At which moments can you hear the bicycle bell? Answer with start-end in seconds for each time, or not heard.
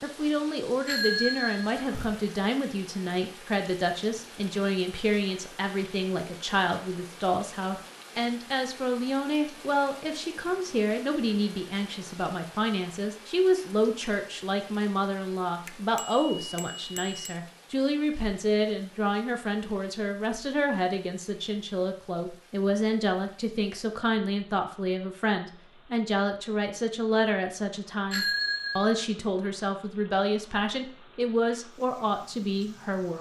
0.8-2.1, 15.7-17.4, 28.1-29.0.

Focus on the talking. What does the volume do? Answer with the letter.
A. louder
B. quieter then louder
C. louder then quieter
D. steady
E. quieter
D.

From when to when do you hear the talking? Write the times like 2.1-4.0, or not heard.
0.0-33.1.